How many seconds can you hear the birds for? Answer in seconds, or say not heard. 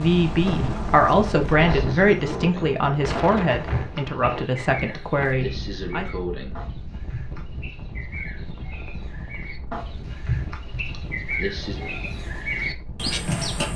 14 s.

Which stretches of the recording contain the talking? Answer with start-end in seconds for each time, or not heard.
0.0-6.0.